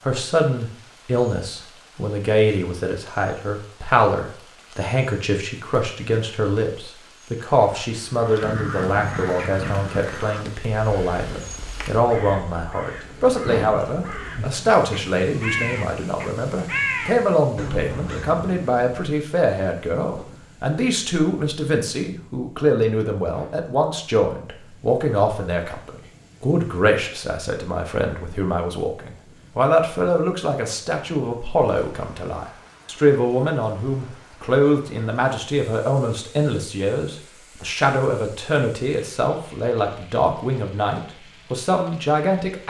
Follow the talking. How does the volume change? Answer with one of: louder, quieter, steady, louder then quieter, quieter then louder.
steady.